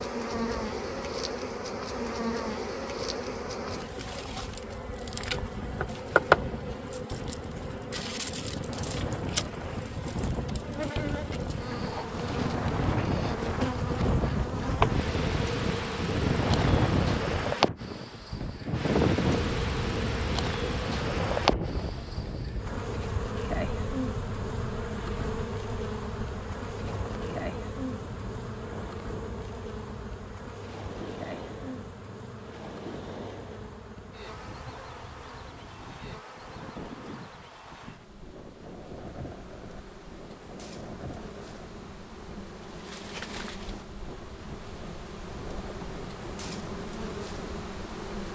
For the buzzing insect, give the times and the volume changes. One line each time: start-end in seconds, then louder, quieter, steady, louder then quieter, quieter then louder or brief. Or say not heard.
0.0-48.2 quieter.